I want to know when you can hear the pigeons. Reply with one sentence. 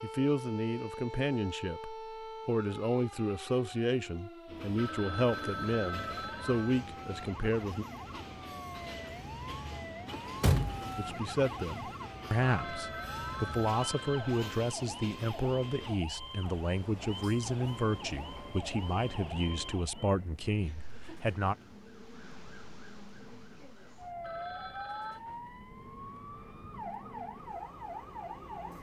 You can't hear the pigeons here.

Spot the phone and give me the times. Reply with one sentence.
You can hear the phone from 4.8 to 6.8 s, from 12.4 to 14.4 s and from 24.2 to 25.2 s.